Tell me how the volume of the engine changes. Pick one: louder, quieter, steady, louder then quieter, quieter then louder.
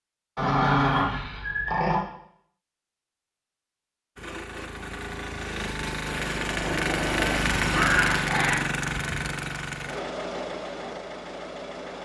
louder then quieter.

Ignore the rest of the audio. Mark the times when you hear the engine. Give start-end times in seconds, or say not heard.
4.2-12.0.